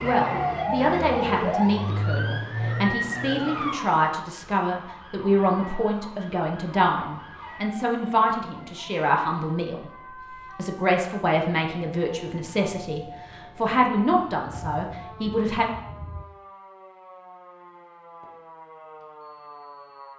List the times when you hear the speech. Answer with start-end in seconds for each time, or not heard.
0.0-9.9, 10.6-15.7.